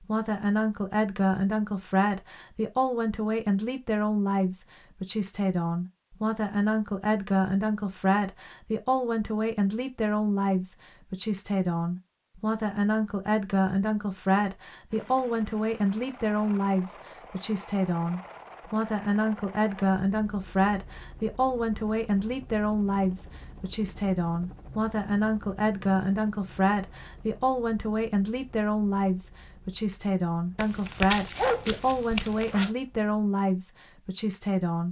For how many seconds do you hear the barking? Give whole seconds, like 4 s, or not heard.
2 s.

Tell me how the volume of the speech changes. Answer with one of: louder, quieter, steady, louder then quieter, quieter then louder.
steady.